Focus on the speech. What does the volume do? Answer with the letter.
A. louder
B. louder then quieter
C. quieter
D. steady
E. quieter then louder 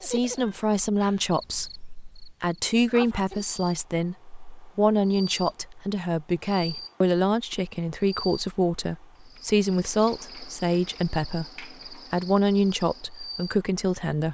D.